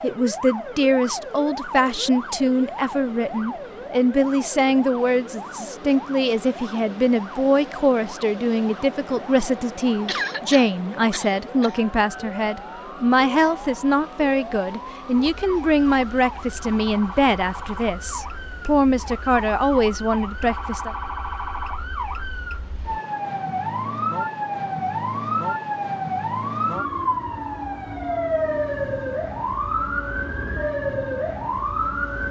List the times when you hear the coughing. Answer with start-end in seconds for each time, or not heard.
10.1-11.8.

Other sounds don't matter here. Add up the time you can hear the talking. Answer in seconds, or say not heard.
21 s.